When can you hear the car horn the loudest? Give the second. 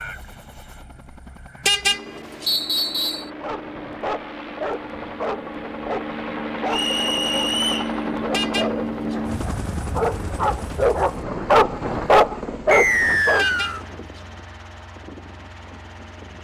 2 s.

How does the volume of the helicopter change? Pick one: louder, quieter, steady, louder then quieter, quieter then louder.
louder then quieter.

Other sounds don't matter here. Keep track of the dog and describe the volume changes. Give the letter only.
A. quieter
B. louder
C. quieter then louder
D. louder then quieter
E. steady
B.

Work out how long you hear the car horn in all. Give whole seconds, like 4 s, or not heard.
3 s.